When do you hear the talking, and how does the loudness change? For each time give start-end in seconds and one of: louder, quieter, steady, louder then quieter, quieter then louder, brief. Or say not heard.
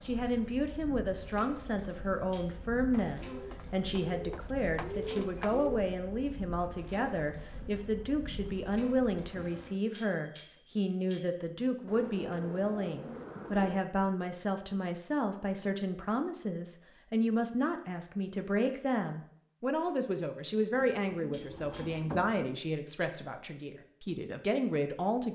0.0-25.2 steady.